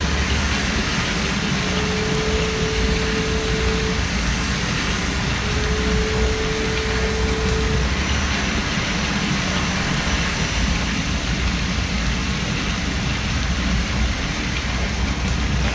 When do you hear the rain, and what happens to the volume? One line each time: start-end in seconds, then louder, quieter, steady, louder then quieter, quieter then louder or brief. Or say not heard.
0.0-15.6 steady.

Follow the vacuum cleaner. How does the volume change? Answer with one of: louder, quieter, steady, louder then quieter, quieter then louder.
steady.